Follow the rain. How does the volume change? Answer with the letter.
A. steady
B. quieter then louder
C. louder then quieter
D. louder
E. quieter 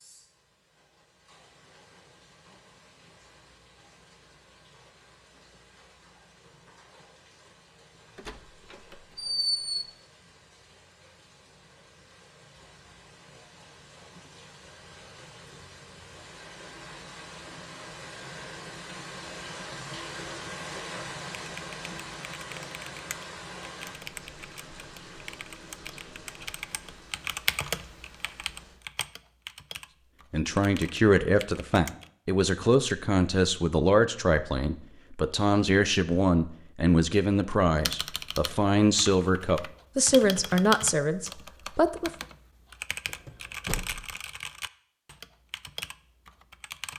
C.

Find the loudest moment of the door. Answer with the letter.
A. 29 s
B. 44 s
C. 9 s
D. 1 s
C.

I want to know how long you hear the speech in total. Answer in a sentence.
The speech can be heard for 12 seconds in total.